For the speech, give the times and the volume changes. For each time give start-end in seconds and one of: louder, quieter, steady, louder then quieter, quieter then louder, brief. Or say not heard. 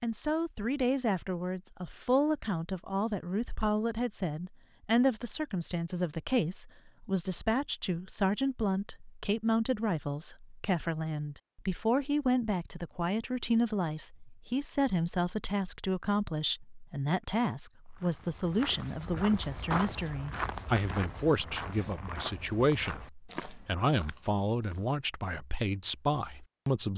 0.0-26.9 steady.